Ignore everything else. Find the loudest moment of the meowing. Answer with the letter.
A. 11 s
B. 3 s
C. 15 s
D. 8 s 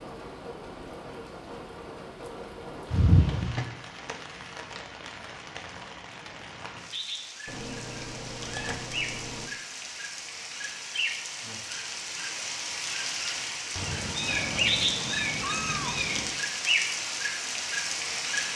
B.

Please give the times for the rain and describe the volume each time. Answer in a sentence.
The rain can be heard from 0.0 to 18.5 s, getting louder.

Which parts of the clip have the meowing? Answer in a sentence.
The meowing can be heard from 2.9 to 3.7 s, from 7.5 to 9.5 s and from 13.8 to 16.4 s.